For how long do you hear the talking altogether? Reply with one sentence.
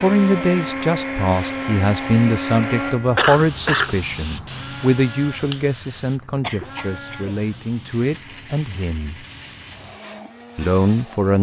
The talking can be heard for 10 seconds in total.